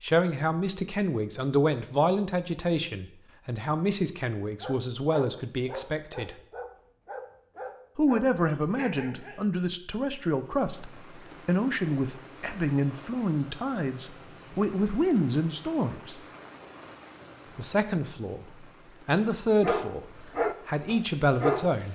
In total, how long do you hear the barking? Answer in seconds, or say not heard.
7 s.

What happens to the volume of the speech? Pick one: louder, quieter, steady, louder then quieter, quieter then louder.
steady.